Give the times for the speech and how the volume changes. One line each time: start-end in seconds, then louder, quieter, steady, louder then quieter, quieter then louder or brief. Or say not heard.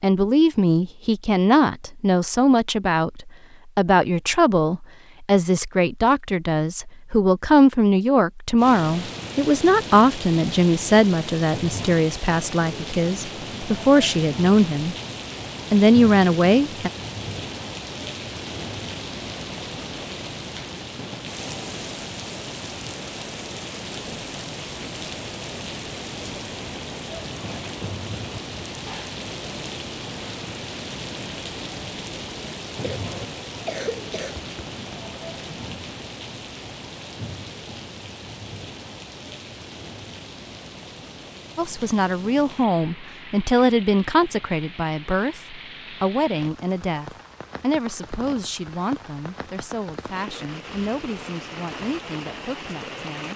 0.0-14.9 steady
15.7-16.9 brief
41.5-53.3 quieter.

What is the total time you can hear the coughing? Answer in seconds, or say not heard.
2 s.